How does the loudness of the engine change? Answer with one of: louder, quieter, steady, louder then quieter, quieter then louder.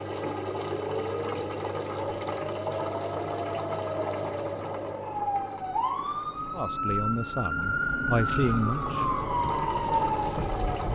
quieter then louder.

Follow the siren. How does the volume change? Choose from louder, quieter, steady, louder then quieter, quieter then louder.
louder.